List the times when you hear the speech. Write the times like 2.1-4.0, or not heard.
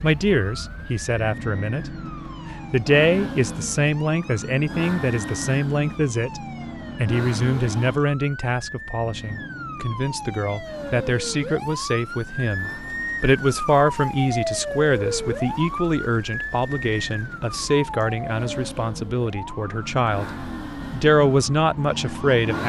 0.0-1.9, 2.7-6.4, 7.0-22.6.